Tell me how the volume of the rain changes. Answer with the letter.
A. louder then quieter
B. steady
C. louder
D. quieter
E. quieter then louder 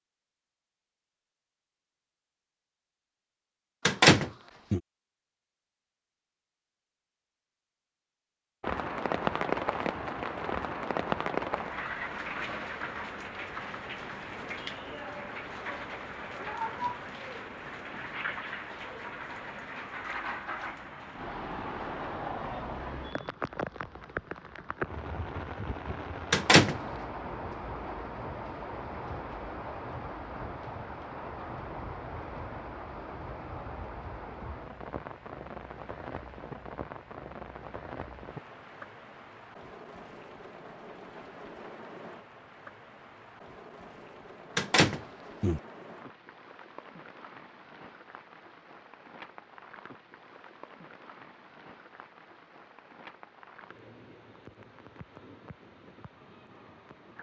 D.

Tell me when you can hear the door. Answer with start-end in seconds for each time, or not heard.
3.9-4.8, 26.3-26.8, 44.5-45.6.